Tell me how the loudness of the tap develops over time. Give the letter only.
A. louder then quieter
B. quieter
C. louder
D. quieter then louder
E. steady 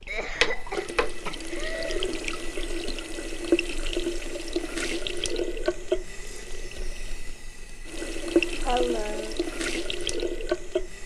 E.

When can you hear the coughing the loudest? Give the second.
9 s.